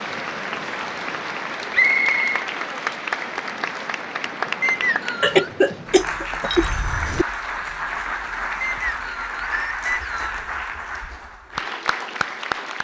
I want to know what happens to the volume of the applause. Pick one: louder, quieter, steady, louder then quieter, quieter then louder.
steady.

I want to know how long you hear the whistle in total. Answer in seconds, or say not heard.
3 s.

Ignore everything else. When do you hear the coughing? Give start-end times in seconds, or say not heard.
5.2-7.2.